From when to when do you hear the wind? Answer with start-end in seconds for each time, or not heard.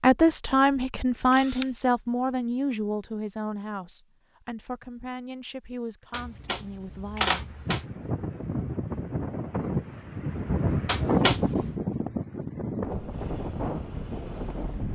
7.4-14.9.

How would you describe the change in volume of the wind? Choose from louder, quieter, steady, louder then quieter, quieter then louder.
louder then quieter.